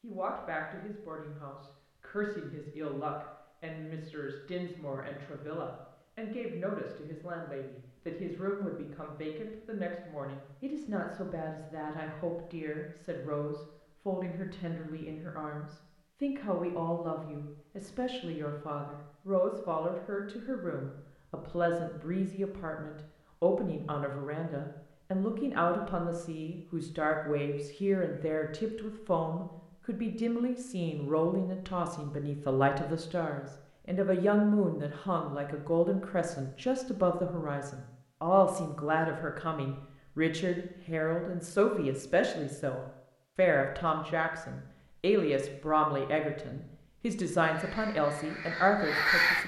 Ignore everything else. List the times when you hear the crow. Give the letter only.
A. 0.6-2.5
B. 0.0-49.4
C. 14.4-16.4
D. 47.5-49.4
D.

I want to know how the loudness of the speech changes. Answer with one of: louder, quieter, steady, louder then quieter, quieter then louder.
louder.